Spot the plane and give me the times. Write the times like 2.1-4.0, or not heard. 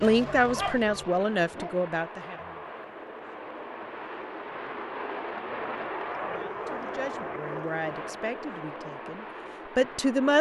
0.0-10.3.